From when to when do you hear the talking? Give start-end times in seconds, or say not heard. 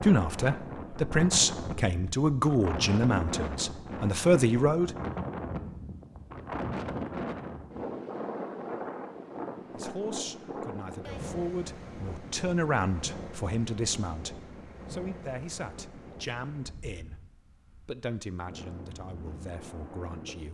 0.0-4.9, 9.8-17.1, 17.9-20.4.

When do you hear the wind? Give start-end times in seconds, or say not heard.
0.0-20.4.